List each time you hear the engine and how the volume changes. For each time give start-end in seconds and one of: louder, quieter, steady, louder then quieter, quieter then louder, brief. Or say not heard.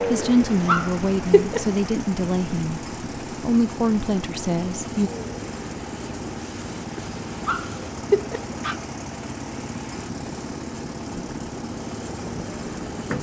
0.0-13.1 steady.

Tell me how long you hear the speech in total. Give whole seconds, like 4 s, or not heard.
5 s.